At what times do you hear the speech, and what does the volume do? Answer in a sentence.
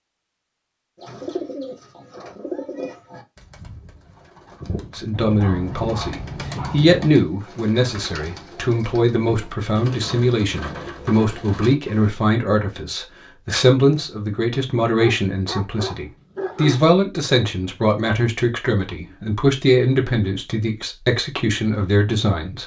The speech can be heard from 5.0 to 22.6 s, at a steady volume.